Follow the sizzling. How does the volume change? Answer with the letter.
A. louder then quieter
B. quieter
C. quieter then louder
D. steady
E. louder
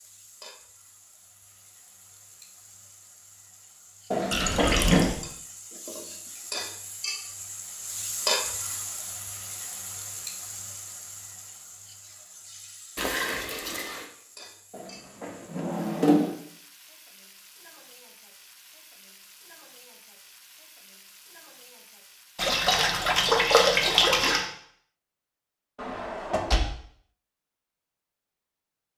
A.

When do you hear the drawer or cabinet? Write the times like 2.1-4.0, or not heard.
4.1-5.1, 14.7-16.3, 25.8-26.7.